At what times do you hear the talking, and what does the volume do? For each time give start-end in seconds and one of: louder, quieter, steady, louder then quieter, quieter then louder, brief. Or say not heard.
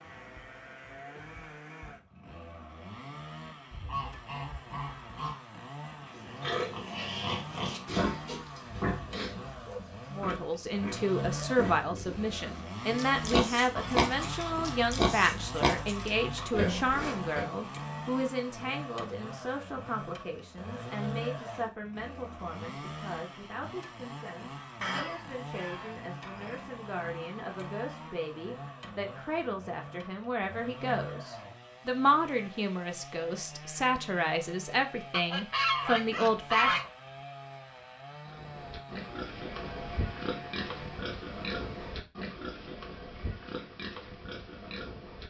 10.1-36.8 quieter then louder.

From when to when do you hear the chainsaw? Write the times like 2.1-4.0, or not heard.
0.0-42.0.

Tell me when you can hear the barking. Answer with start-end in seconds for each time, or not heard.
9.1-9.8.